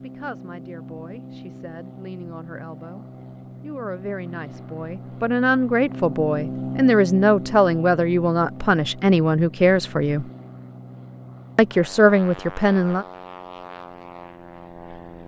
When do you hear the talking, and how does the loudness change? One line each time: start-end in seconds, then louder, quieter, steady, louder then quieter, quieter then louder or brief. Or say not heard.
0.0-10.2 louder
11.6-13.1 brief.